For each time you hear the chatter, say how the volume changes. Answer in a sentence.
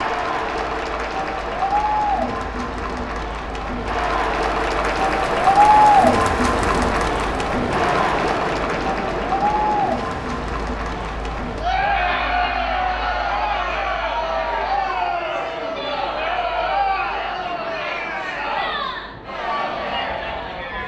You can hear the chatter from 0.0 to 20.8 s, getting louder then quieter.